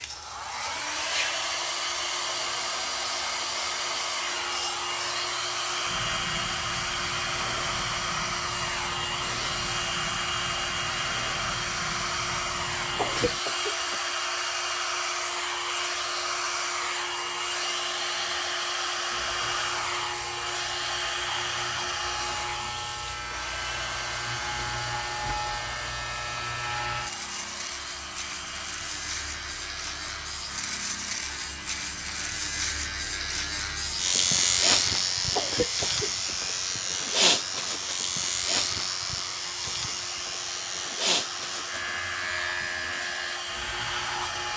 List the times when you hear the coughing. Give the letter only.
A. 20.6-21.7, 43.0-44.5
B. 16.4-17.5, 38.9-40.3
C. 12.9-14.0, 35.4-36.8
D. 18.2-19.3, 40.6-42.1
C.